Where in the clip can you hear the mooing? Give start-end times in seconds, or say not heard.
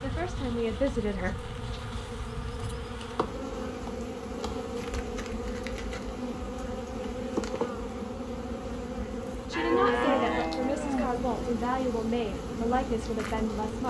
9.5-11.1.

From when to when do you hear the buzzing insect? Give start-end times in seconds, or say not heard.
0.0-13.8.